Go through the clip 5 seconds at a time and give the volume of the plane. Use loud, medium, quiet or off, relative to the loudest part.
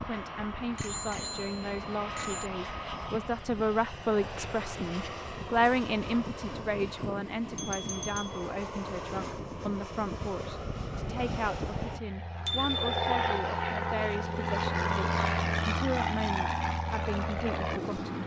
medium, medium, loud, loud.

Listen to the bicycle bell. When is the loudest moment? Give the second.
13 s.